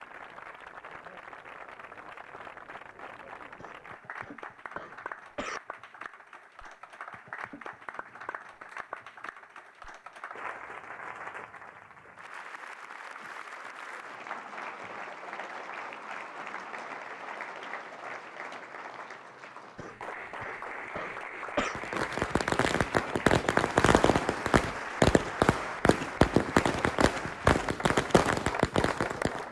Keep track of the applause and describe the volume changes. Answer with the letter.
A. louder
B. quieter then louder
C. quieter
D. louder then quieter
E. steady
A.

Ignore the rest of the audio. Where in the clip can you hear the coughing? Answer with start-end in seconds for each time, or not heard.
3.5-5.6, 19.8-21.8.